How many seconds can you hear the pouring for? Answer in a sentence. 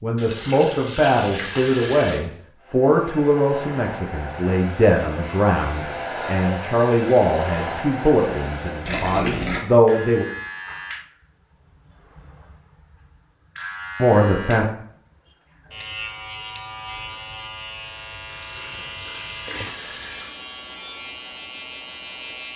The pouring can be heard for 5 seconds in total.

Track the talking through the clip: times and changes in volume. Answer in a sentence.
You can hear the talking from 0.0 to 10.2 s, at a steady volume; and briefly from 14.0 to 14.7 s.